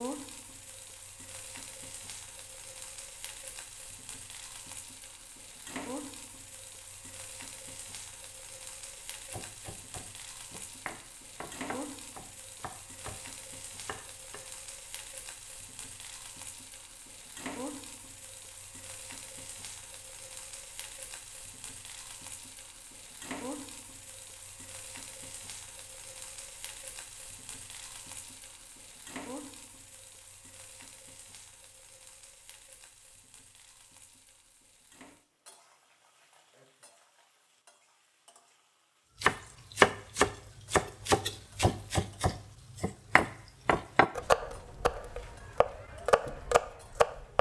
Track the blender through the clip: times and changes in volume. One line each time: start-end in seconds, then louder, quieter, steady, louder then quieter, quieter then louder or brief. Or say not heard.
not heard.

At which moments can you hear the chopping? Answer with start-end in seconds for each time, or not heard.
8.9-14.4, 39.2-47.3.